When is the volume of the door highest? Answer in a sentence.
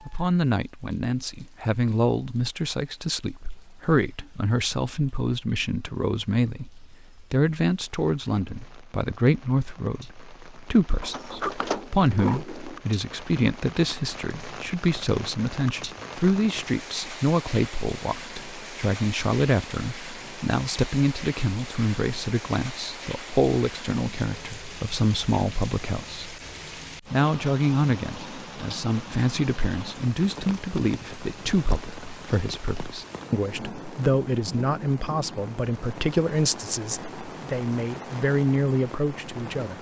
The volume of the door peaks at 12 seconds.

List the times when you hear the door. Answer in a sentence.
You can hear the door from 11.0 to 12.8 s.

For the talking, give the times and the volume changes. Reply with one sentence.
The talking can be heard from 0.1 to 26.3 s, at a steady volume; and from 27.1 to 39.7 s, at a steady volume.